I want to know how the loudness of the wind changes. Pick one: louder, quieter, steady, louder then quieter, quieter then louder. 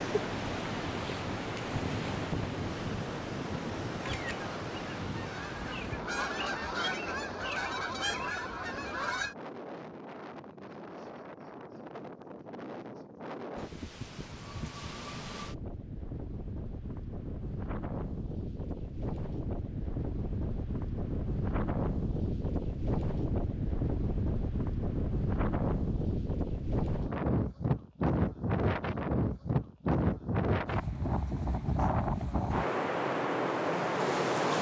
quieter then louder.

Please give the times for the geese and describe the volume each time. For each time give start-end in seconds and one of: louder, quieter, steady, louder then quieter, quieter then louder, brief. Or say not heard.
4.0-9.3 louder.